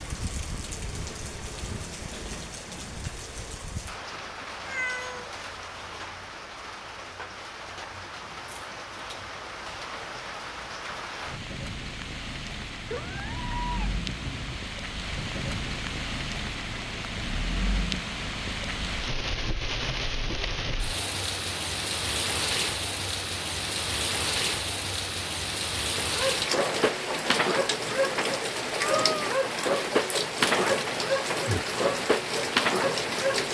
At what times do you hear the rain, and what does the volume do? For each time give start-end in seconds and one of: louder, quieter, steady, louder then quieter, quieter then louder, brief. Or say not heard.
0.0-33.4 louder.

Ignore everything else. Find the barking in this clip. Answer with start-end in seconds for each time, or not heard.
25.9-33.4.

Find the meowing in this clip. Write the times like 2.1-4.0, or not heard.
4.7-5.3, 12.9-14.6, 28.8-29.2.